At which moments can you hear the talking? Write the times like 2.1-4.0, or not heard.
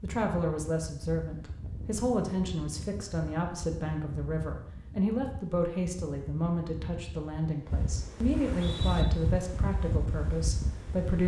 0.0-11.2.